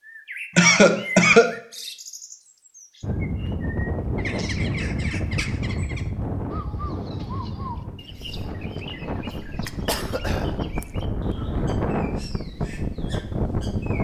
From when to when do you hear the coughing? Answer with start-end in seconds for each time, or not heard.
0.6-1.6, 9.2-10.6.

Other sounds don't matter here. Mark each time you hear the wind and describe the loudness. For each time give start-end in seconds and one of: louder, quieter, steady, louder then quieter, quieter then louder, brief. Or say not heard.
3.0-13.9 quieter then louder.